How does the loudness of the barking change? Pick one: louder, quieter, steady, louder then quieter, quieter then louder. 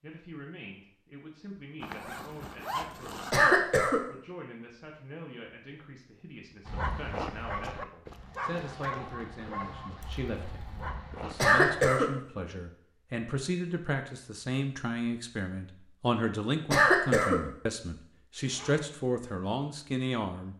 quieter.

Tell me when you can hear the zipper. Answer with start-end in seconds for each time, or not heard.
1.8-3.4, 10.0-10.9, 18.4-18.9.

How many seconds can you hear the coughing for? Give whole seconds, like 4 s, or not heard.
2 s.